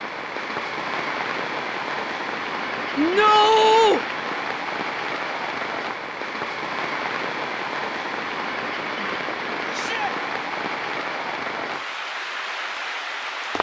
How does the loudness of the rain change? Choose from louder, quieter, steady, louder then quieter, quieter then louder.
steady.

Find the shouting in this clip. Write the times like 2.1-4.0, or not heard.
3.0-4.0, 9.7-10.2.